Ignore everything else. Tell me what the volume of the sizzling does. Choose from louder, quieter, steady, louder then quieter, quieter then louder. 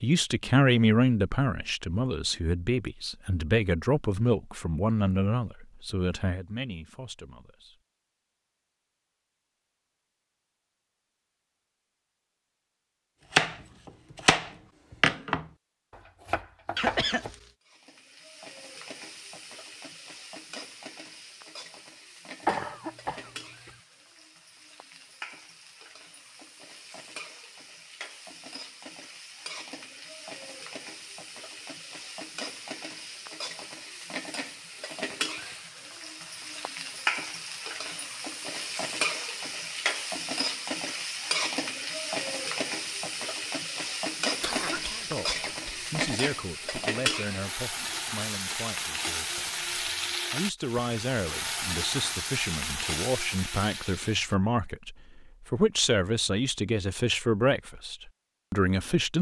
louder.